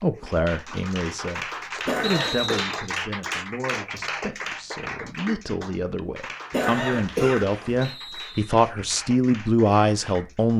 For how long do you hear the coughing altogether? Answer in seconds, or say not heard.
2 s.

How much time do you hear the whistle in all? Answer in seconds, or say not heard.
2 s.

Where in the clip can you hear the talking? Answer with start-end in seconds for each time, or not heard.
0.0-10.5.